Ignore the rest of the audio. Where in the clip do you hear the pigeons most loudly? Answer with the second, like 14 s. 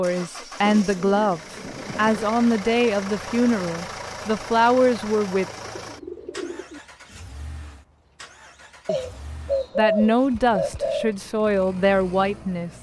10 s.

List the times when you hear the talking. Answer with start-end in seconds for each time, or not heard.
0.0-5.5, 9.8-12.7.